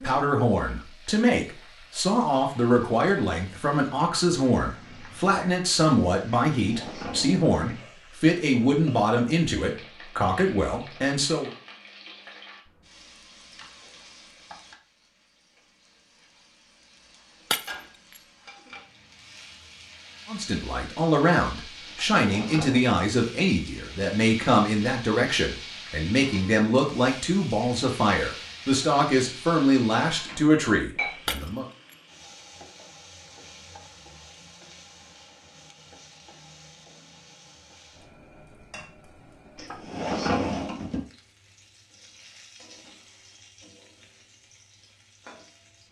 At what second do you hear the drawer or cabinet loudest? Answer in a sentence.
The loudest moment of the drawer or cabinet is at 40 seconds.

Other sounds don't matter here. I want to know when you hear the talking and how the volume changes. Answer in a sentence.
You can hear the talking from 0.0 to 11.5 s, at a steady volume; and from 20.2 to 31.6 s, at a steady volume.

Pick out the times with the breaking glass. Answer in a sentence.
The breaking glass can be heard from 17.5 to 18.2 s and from 31.2 to 31.9 s.